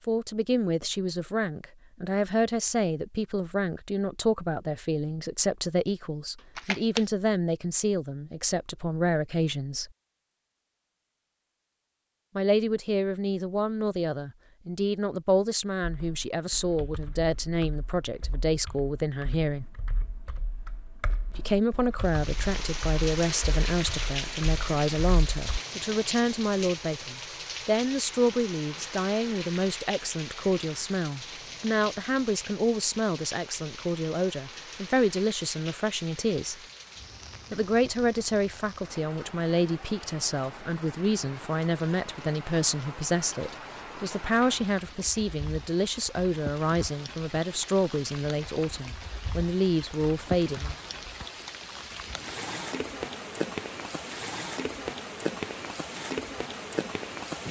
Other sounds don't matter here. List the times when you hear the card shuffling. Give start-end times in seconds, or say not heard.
6.5-7.0.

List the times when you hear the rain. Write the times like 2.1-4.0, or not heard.
22.0-57.4.